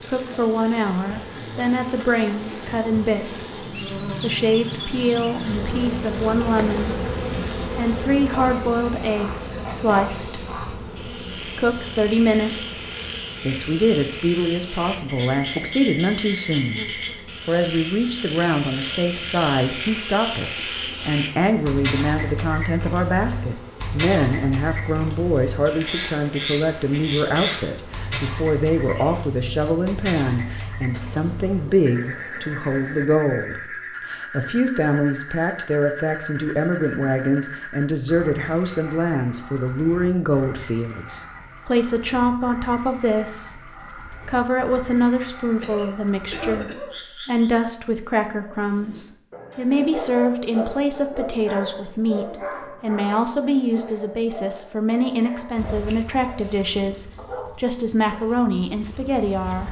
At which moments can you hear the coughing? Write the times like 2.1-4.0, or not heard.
45.6-47.0.